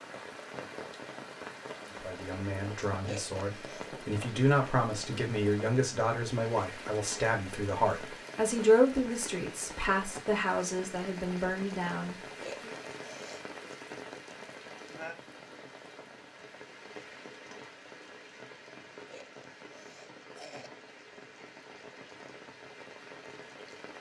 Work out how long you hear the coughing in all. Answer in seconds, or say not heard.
4 s.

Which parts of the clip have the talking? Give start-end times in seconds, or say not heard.
2.0-12.7.